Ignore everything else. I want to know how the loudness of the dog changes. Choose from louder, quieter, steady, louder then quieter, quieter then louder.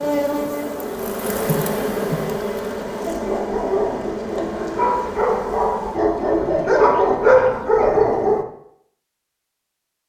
louder.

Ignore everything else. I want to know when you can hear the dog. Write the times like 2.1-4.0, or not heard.
3.0-8.4.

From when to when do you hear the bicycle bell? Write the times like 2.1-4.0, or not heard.
not heard.